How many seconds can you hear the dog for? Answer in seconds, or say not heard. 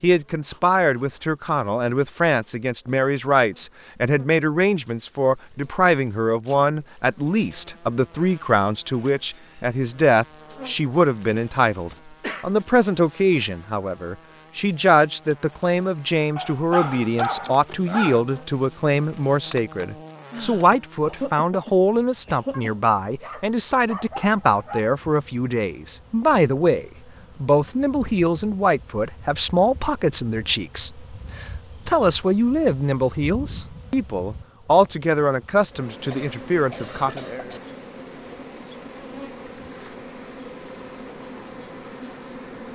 4 s.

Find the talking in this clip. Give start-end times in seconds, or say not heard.
0.0-37.2.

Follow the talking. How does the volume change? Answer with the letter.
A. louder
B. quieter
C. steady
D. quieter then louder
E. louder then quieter
C.